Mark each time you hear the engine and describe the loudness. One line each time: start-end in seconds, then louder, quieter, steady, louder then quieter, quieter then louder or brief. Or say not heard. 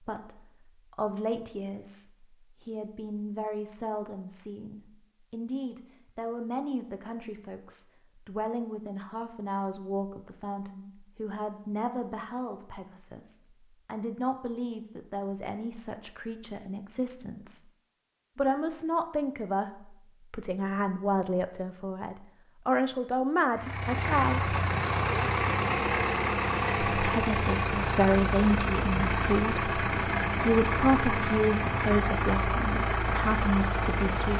23.6-34.3 steady.